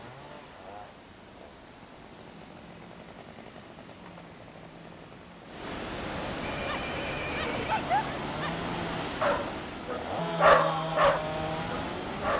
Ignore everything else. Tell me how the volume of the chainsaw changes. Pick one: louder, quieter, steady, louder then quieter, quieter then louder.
louder.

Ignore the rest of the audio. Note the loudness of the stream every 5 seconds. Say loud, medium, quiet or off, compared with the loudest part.
quiet, loud, loud.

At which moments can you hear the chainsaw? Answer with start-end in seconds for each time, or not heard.
0.0-12.3.